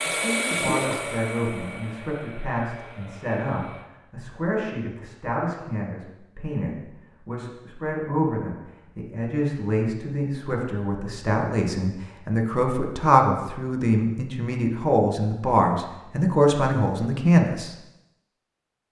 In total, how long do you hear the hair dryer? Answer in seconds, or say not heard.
4 s.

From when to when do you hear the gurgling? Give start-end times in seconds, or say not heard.
0.5-1.1.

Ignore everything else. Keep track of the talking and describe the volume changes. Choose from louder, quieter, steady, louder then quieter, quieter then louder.
louder.